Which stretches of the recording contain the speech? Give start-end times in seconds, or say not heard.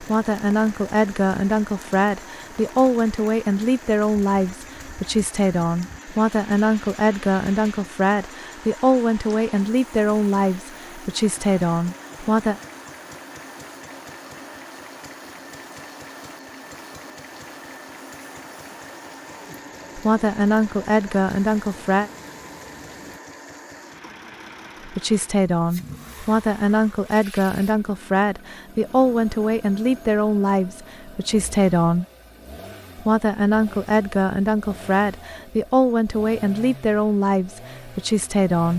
0.0-12.6, 19.9-22.1, 24.9-32.0, 33.0-38.7.